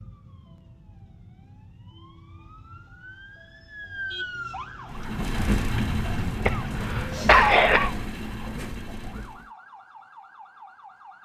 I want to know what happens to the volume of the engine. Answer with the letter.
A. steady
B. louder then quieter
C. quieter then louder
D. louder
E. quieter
E.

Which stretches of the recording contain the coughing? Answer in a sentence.
You can hear the coughing from 6.5 to 7.9 s.